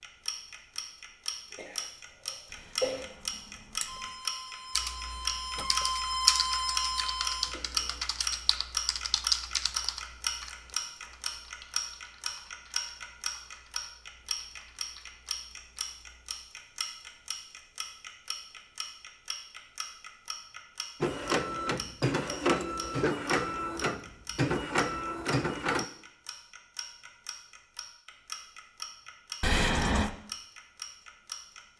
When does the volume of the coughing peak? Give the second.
3 s.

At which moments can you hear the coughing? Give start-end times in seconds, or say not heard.
1.5-3.0.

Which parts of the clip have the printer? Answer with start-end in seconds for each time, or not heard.
3.9-8.0, 21.0-25.9.